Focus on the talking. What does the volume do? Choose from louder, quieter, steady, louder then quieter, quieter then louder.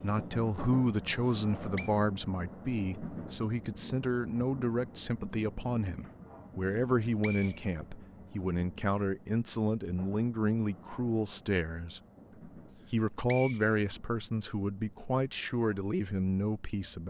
steady.